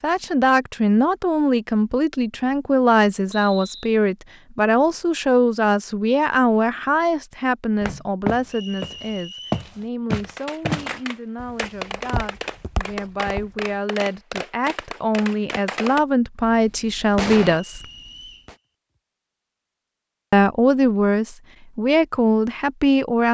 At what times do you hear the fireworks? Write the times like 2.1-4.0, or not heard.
10.2-18.6.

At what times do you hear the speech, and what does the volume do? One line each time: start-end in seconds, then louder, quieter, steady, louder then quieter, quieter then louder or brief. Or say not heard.
0.0-17.9 quieter then louder
20.3-23.2 brief.